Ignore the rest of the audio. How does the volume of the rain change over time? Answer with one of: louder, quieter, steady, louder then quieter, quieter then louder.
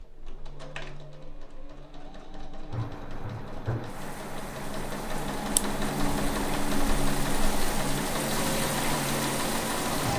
louder.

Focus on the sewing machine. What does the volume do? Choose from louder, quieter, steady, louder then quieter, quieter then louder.
louder.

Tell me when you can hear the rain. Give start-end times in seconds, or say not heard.
2.7-10.1.